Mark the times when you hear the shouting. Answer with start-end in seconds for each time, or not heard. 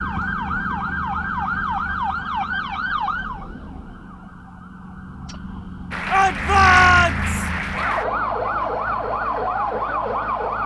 6.1-7.5.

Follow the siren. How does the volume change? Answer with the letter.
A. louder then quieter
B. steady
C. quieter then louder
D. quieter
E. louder
C.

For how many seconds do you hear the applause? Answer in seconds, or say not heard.
2 s.